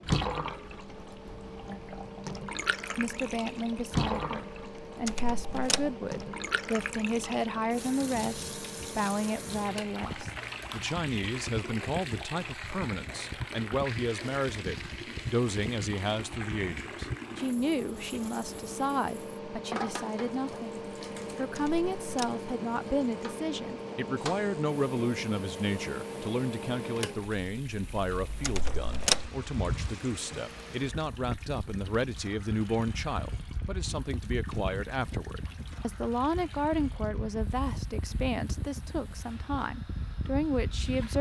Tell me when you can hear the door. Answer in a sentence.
The door can be heard from 5.0 to 6.0 s, from 21.6 to 22.4 s and from 28.4 to 29.3 s.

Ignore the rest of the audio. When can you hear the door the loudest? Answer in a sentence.
The loudest moment of the door is at 29 seconds.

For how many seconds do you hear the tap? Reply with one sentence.
The tap can be heard for 41 seconds in total.